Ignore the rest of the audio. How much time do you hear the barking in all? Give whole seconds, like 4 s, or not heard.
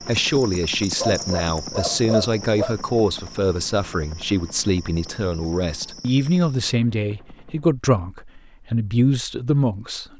2 s.